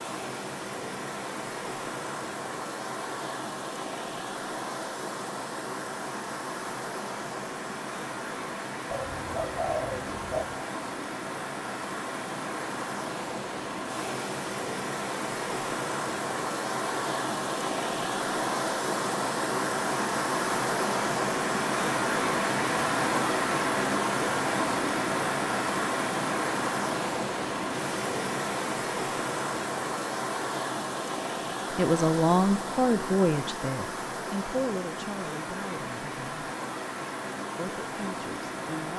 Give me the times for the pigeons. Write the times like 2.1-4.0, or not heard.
8.9-10.7.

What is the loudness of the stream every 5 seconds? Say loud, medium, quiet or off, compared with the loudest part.
medium, medium, medium, loud, loud, loud, medium, medium.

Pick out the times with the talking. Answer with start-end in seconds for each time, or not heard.
31.8-36.5, 37.5-38.9.